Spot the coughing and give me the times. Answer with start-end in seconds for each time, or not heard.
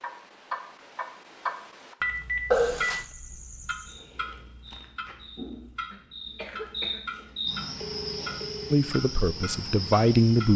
2.5-3.0, 5.9-7.1.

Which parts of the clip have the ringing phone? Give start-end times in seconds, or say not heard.
2.0-3.0, 7.8-8.8.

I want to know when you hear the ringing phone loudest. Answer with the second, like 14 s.
2 s.